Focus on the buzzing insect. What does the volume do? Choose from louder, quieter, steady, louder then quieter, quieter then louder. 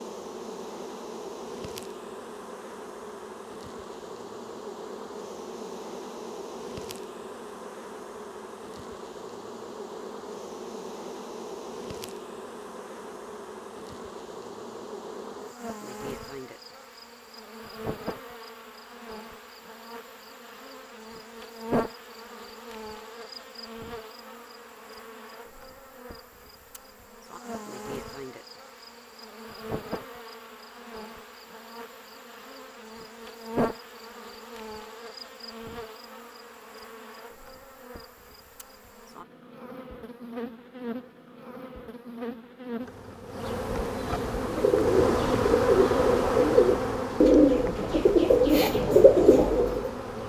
louder.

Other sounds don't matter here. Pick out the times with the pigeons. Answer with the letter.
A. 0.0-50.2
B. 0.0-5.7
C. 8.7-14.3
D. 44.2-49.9
D.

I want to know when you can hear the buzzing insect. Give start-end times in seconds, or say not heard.
0.0-50.2.